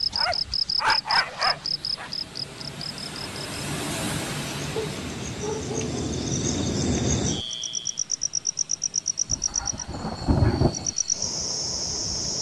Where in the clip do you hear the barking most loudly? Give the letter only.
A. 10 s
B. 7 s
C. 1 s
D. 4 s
C.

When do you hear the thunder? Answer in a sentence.
You can hear the thunder from 9.3 to 10.9 s.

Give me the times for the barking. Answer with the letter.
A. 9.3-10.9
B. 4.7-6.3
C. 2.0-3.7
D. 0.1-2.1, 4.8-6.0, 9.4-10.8
D.